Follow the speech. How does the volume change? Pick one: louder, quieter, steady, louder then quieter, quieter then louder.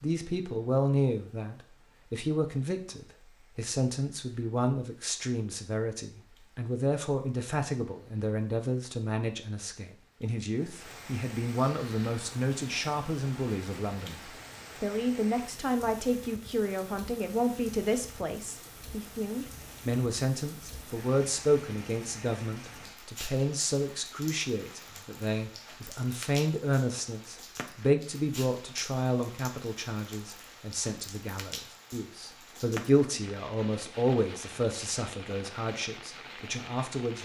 steady.